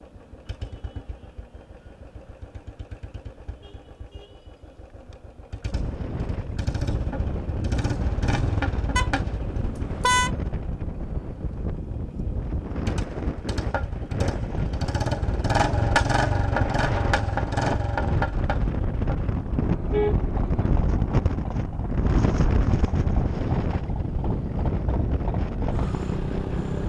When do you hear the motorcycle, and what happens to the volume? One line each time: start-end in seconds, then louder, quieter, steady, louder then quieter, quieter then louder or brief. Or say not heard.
0.0-26.8 louder then quieter.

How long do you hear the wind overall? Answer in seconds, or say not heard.
21 s.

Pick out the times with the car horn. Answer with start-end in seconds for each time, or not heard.
8.9-10.3, 19.6-20.7.